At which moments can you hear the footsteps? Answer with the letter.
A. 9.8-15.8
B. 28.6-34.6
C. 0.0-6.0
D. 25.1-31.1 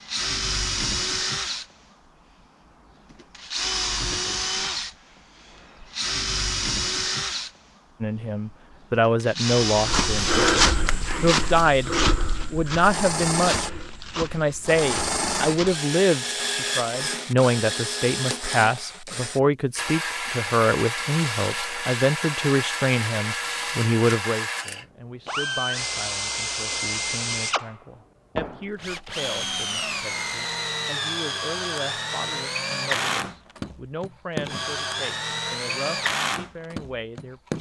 A.